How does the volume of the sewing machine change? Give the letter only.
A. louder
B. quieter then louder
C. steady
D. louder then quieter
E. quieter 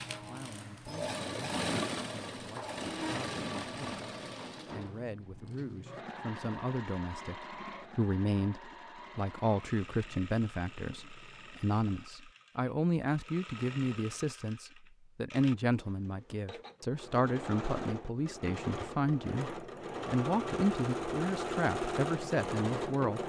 B.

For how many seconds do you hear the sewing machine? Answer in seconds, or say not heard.
23 s.